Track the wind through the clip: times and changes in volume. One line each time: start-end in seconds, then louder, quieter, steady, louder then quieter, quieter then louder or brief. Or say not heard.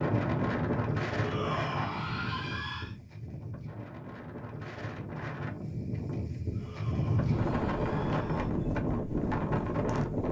0.0-10.2 quieter then louder.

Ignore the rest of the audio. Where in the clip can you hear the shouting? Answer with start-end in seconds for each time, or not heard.
1.1-3.0, 6.5-8.5.